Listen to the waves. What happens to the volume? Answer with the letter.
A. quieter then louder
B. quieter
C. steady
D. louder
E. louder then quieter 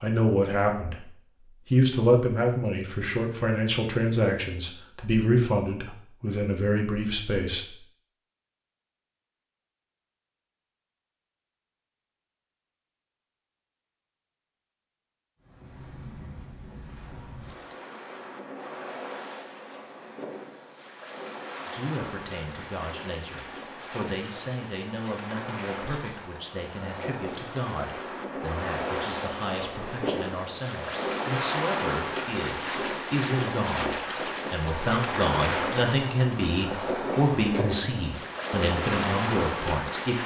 D.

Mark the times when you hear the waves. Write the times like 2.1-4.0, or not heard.
15.4-40.2.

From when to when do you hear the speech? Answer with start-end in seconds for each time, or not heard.
0.0-1.1, 1.7-7.7, 21.6-40.2.